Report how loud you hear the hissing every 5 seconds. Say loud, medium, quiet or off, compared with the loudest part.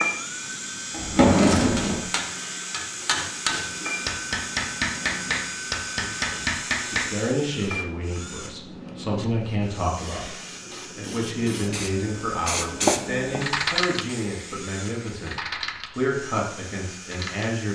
medium, medium, loud, medium.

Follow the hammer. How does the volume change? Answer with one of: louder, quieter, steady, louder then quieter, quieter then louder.
louder.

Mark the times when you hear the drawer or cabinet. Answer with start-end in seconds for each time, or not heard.
0.9-2.0.